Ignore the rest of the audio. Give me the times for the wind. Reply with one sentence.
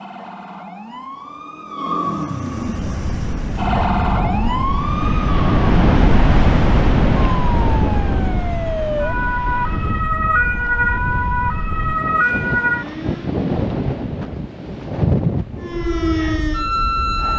You can hear the wind from 2.8 to 17.3 s.